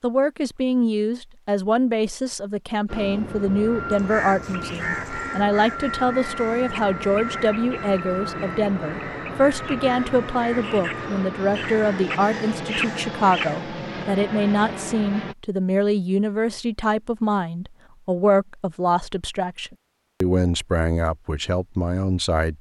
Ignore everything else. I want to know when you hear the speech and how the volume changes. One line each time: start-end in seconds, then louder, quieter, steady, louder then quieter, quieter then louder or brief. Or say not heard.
0.0-22.5 steady.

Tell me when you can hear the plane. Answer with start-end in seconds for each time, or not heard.
2.9-15.3.